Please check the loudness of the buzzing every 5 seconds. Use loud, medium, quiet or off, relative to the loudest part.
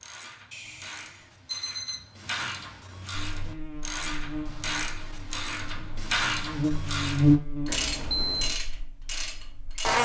quiet, loud.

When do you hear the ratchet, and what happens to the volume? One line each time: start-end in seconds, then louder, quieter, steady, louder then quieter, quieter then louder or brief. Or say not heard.
0.0-10.0 louder.